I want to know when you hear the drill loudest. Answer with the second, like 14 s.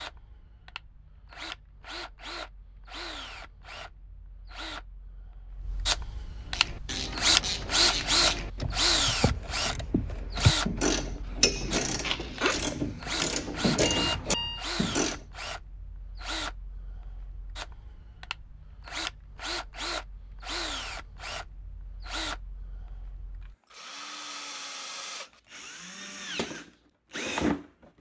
8 s.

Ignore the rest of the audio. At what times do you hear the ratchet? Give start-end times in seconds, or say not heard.
6.5-15.2.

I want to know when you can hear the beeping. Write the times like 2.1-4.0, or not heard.
13.8-14.7.